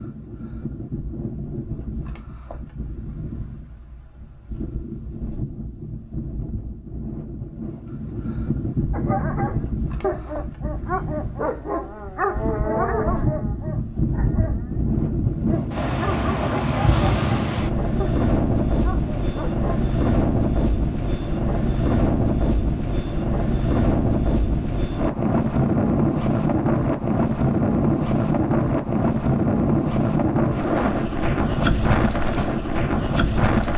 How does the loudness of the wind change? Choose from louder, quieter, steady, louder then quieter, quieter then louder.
louder.